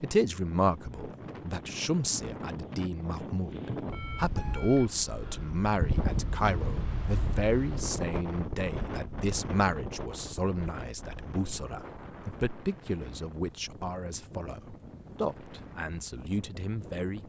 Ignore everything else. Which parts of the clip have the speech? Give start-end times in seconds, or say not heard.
0.0-17.2.